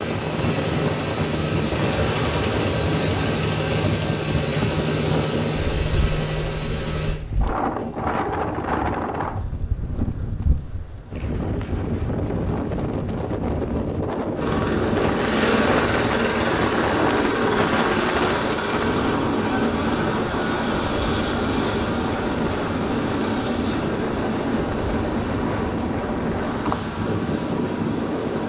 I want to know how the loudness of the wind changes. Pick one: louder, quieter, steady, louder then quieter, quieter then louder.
steady.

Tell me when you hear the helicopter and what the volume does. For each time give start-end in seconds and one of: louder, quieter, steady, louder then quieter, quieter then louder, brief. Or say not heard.
0.0-7.2 steady
14.3-28.4 quieter.